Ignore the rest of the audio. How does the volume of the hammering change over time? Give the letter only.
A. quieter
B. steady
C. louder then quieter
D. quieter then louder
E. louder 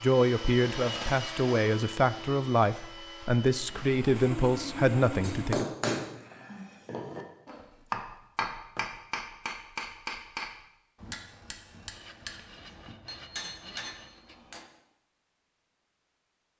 A.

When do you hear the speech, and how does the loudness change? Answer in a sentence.
The speech can be heard from 0.0 to 5.7 s, at a steady volume.